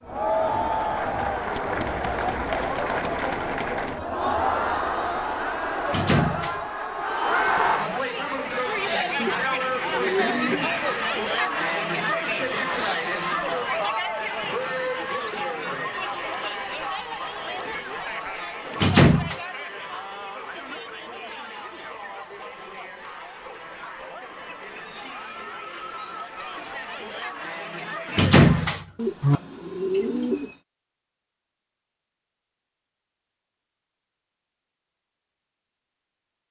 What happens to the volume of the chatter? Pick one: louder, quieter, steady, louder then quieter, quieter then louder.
quieter.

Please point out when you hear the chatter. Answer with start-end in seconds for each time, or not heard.
0.0-28.7.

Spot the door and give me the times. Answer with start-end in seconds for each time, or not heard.
5.8-6.6, 18.7-19.4, 28.1-29.4.